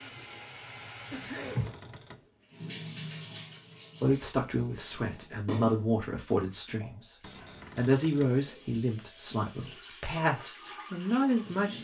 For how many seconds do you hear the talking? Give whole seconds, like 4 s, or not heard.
7 s.